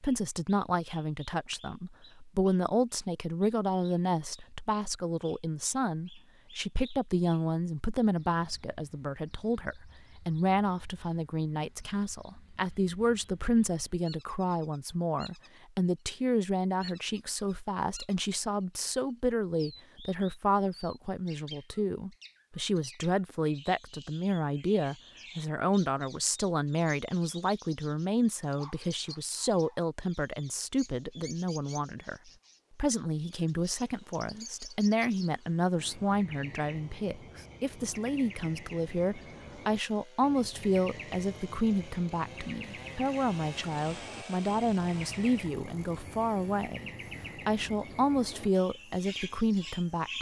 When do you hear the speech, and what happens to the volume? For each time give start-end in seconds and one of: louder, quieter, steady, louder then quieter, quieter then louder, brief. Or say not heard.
0.0-50.1 steady.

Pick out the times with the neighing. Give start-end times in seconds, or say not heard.
not heard.